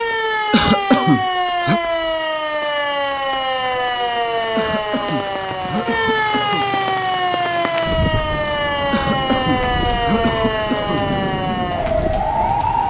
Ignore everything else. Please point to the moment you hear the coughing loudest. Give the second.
1 s.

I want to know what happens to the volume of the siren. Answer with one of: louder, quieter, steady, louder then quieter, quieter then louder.
steady.